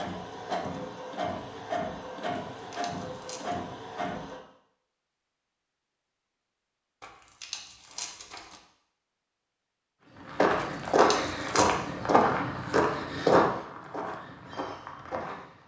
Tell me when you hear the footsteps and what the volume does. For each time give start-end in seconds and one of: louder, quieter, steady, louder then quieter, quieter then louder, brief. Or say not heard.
10.2-15.6 quieter.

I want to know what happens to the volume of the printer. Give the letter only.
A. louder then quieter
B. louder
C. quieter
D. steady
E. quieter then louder
D.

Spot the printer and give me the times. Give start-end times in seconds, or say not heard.
0.0-4.4.